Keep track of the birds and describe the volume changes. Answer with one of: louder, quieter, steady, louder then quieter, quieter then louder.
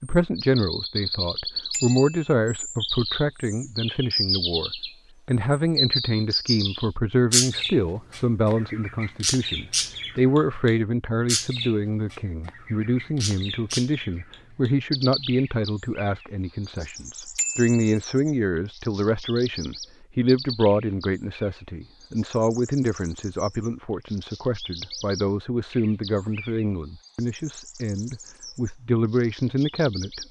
quieter.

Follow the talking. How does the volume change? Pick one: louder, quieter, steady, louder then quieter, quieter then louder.
steady.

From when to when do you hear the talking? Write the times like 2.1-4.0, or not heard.
0.0-30.2.